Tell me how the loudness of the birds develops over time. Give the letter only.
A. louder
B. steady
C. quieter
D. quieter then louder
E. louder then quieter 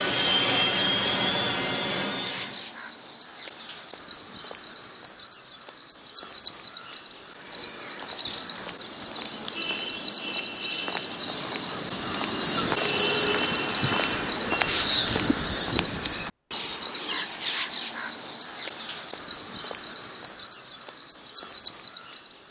E.